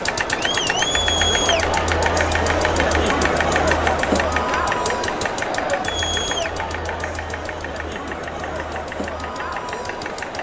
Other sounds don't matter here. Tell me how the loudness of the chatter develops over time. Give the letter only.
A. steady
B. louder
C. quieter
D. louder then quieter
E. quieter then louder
C.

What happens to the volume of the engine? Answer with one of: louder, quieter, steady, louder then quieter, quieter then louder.
quieter.